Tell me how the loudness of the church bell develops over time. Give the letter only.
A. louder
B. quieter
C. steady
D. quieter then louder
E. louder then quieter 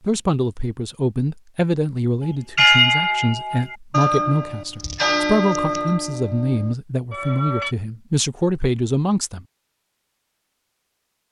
B.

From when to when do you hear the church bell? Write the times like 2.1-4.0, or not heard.
2.5-7.8.